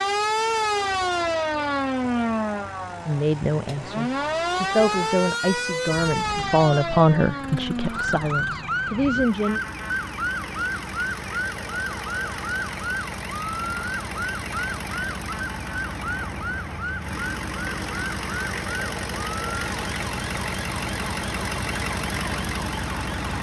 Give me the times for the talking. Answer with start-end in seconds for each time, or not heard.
3.0-9.6.